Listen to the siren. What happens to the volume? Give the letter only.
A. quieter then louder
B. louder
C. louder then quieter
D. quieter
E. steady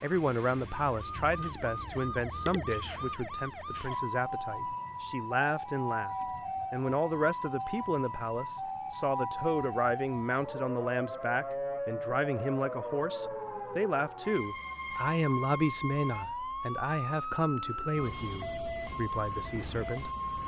E.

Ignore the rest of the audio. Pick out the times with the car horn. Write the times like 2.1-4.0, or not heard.
not heard.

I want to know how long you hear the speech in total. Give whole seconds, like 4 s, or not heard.
20 s.